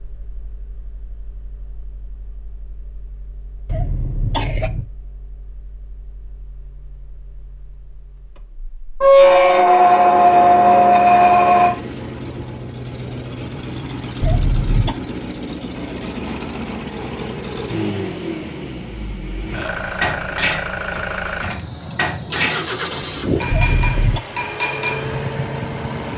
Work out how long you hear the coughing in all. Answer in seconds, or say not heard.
3 s.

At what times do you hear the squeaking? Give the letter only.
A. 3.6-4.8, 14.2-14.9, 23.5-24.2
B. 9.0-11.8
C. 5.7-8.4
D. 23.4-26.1
B.